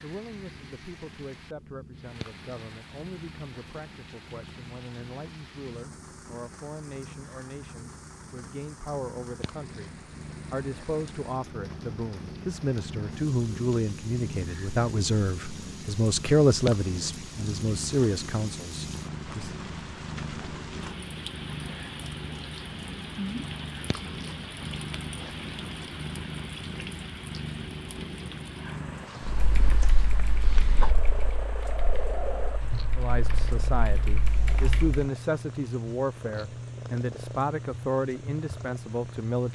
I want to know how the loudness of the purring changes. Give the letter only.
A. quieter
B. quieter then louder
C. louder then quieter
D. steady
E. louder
E.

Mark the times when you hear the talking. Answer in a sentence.
You can hear the talking from 0.0 to 19.6 s and from 33.0 to 39.5 s.